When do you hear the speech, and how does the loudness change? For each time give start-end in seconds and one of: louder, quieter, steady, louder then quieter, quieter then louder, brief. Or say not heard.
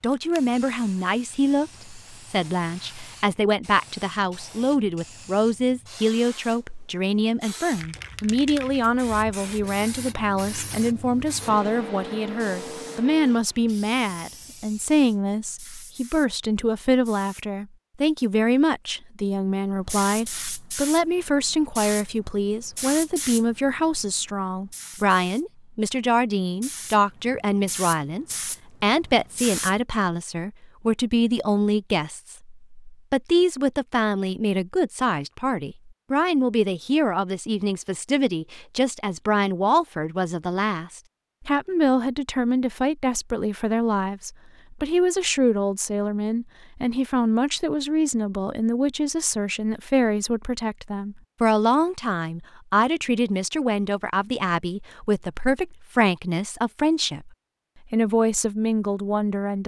0.0-57.3 steady
57.9-59.6 brief.